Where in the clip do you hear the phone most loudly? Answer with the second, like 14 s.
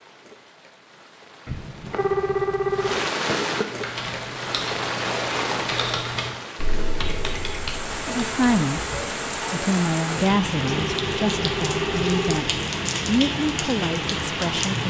2 s.